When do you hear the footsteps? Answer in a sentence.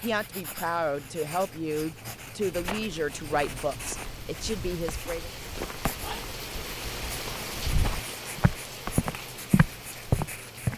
The footsteps can be heard from 2.5 to 10.7 s.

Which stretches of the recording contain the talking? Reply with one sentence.
The talking can be heard from 0.0 to 5.3 s.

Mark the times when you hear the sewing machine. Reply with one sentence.
You can't hear the sewing machine here.